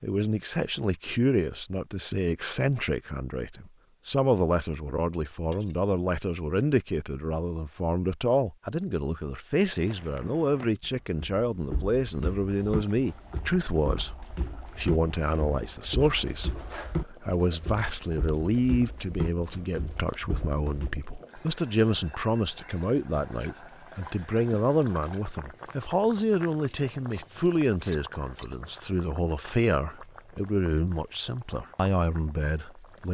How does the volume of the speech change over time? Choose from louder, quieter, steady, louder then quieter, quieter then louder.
steady.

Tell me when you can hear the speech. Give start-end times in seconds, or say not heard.
0.0-33.1.